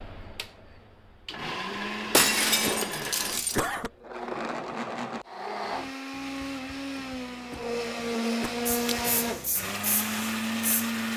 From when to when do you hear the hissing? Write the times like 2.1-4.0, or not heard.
8.7-11.1.